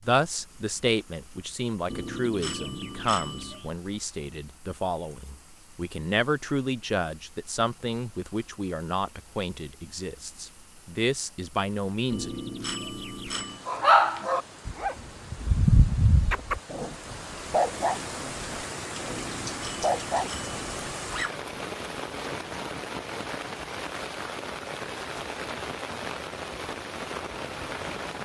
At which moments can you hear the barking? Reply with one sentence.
You can hear the barking from 13.7 to 21.3 s.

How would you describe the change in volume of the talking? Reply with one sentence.
The volume of the talking stays about the same.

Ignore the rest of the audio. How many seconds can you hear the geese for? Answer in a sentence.
You can't hear the geese here.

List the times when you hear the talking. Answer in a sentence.
The talking can be heard from 0.1 to 12.3 s.